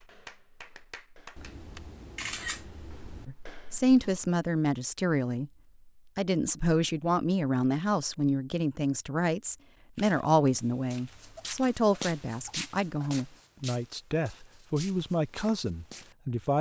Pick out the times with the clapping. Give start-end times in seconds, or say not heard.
0.0-1.8.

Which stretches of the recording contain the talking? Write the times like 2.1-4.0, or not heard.
3.2-5.5, 6.2-16.5.